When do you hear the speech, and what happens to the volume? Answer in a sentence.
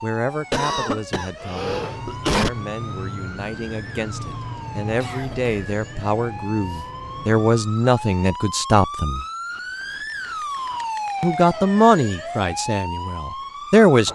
The speech can be heard from 0.0 to 9.2 s, getting louder; and briefly from 11.2 to 14.1 s.